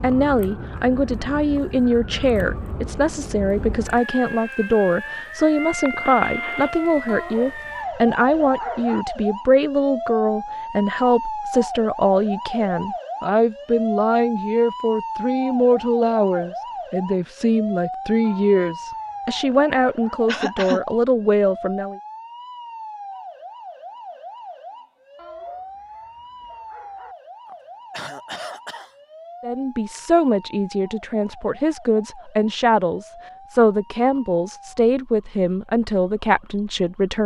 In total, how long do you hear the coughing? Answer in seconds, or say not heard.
3 s.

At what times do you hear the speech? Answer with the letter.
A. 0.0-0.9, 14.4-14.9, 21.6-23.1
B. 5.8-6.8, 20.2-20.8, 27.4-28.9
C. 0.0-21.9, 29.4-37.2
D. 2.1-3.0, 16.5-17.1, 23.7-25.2
C.